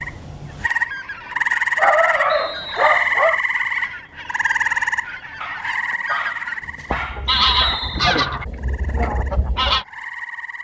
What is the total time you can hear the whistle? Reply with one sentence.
The whistle can be heard for 2 seconds in total.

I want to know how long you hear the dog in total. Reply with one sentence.
You can hear the dog for 4 seconds altogether.